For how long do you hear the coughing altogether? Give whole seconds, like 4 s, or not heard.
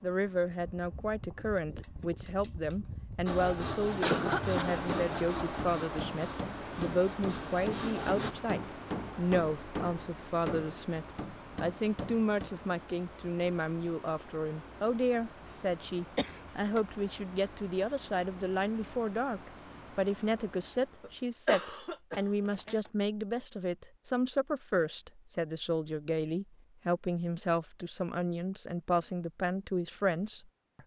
4 s.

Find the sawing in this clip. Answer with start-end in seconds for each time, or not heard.
3.2-8.3.